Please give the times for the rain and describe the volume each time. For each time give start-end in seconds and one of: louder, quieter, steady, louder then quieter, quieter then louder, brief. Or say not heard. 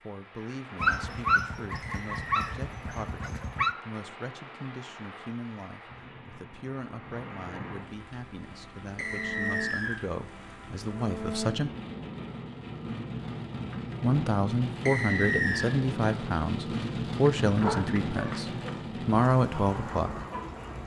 0.0-20.8 louder.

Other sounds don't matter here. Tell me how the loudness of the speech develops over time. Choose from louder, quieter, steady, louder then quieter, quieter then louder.
louder.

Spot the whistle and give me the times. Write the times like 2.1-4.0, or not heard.
1.8-2.4, 8.9-10.0, 14.8-15.8.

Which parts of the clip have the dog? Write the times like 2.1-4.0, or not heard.
0.8-3.8, 17.4-18.8.